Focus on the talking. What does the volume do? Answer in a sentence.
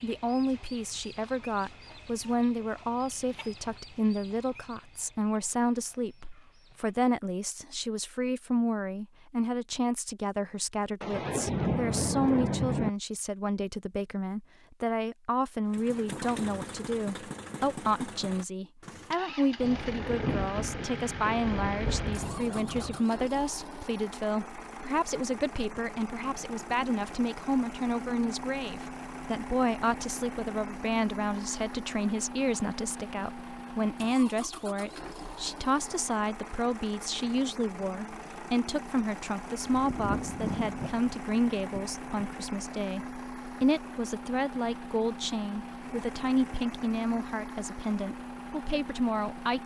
The loudness of the talking stays about the same.